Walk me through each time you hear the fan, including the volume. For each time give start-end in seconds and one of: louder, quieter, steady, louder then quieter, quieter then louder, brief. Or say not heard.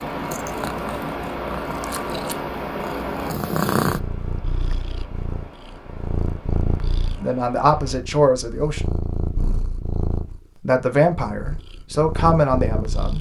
0.0-8.0 quieter.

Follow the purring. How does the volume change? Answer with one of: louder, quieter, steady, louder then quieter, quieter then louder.
louder then quieter.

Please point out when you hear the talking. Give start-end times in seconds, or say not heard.
7.2-8.8, 10.6-13.1.